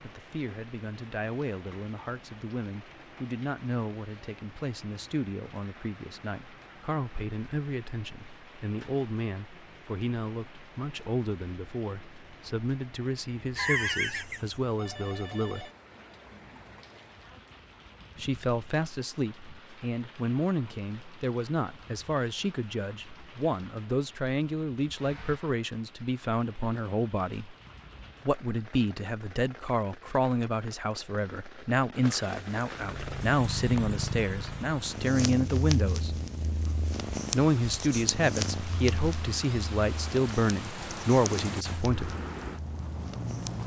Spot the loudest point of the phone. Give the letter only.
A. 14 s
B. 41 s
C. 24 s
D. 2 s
A.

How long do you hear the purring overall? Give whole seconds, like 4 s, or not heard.
11 s.